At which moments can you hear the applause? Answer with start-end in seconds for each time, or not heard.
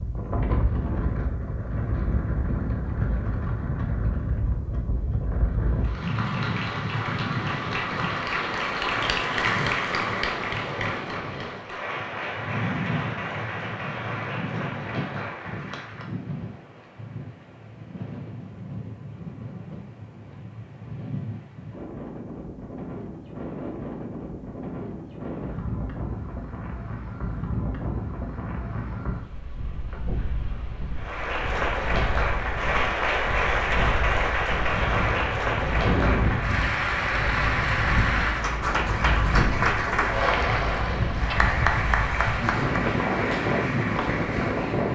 5.8-16.1, 30.9-44.9.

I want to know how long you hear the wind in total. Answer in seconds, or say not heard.
45 s.